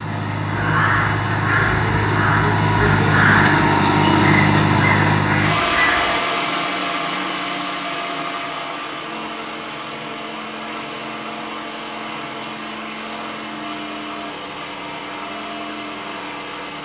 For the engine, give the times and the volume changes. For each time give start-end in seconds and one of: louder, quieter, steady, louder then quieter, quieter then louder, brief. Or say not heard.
0.0-16.8 quieter.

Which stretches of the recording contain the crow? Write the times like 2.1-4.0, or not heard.
0.5-6.2.